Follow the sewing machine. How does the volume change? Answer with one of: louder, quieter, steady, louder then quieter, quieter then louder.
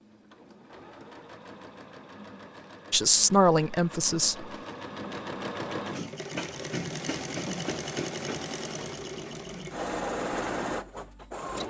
louder.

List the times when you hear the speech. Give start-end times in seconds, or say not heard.
2.9-4.5.